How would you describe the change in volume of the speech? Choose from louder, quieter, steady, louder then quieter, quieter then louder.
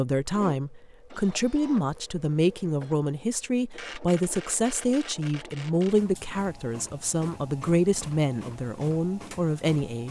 steady.